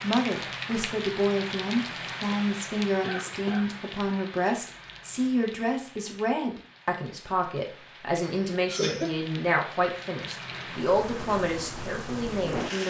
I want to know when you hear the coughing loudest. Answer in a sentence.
The volume of the coughing peaks at 9 seconds.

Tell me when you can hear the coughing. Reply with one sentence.
You can hear the coughing from 3.0 to 3.8 s and from 8.2 to 9.1 s.